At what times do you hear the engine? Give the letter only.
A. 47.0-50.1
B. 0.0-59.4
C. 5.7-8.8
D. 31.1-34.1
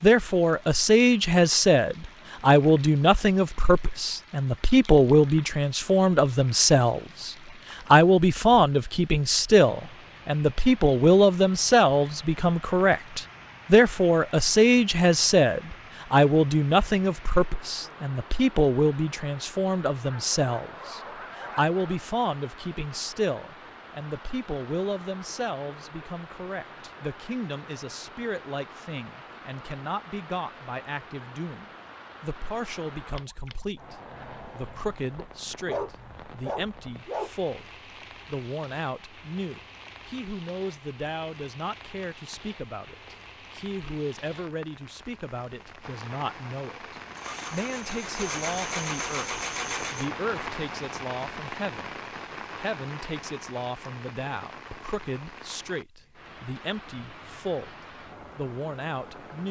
A.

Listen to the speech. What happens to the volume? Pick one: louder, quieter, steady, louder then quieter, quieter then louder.
quieter.